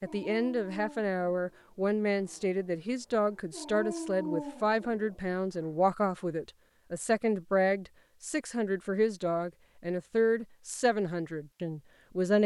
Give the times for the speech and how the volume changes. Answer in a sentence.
The speech can be heard from 0.0 to 12.4 s, at a steady volume.